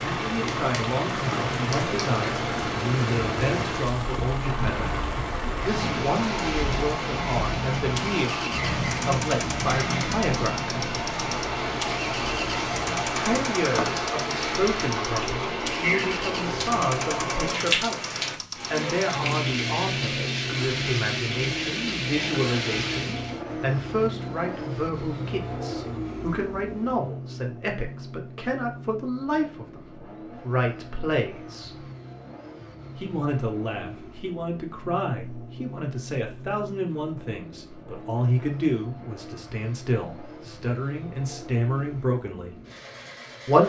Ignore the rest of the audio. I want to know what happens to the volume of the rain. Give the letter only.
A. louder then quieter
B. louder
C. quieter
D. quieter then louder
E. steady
E.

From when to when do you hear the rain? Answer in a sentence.
The rain can be heard from 0.0 to 23.4 s.